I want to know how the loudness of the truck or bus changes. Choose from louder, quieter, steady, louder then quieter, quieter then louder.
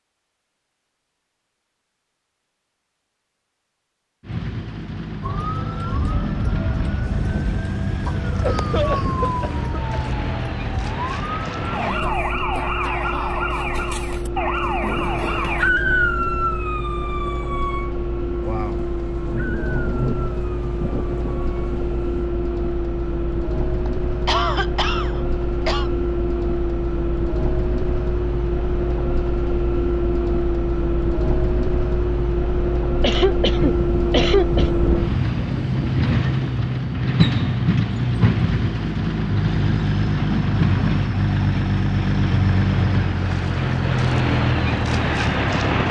louder.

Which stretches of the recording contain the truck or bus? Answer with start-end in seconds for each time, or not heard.
4.2-45.8.